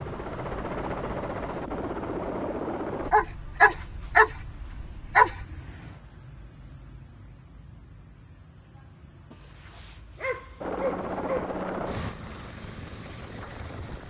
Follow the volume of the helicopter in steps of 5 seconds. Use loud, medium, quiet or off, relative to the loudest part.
loud, off, loud.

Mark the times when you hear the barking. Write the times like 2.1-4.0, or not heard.
3.0-5.5, 9.3-11.6.